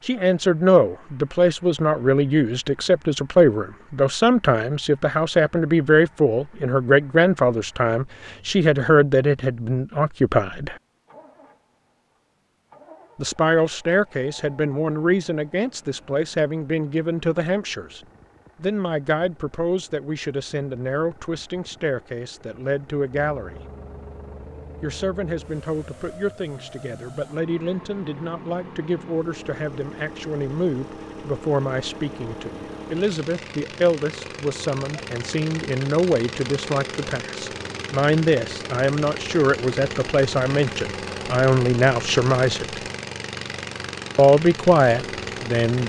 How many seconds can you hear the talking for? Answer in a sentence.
You can hear the talking for 40 seconds altogether.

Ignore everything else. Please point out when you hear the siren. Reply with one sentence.
The siren can't be heard in this clip.